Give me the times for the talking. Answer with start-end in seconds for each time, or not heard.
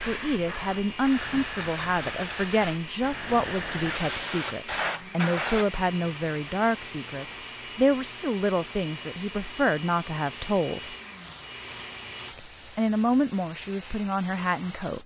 0.1-10.9, 12.3-15.0.